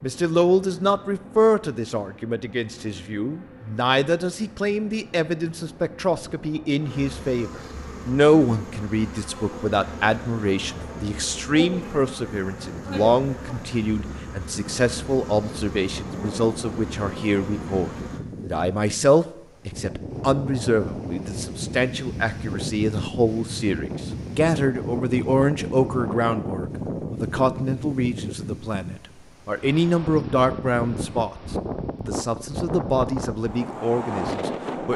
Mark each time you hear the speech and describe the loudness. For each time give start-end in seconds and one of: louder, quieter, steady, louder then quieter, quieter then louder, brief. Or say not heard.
0.0-34.9 steady.